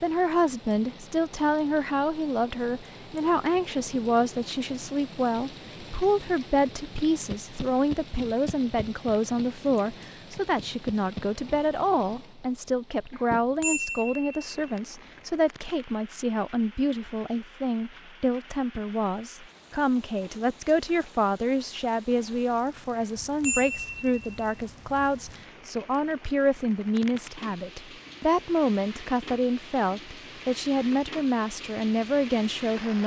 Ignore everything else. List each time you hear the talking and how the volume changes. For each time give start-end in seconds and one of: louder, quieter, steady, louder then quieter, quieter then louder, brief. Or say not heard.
0.0-33.0 steady.